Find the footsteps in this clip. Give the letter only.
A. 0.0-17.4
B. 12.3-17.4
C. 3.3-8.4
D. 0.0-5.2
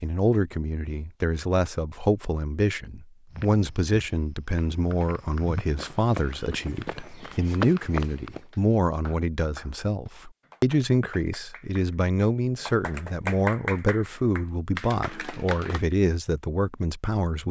C.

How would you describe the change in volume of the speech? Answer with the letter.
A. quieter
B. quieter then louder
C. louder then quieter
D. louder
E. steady
E.